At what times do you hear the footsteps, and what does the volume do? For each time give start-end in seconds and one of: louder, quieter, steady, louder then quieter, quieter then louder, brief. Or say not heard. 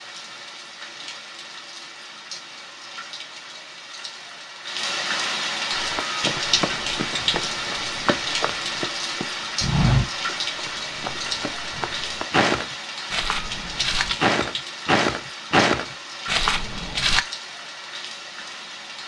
5.7-17.2 louder.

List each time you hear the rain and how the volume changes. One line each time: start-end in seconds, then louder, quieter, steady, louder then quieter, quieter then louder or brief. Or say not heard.
0.0-19.0 louder then quieter.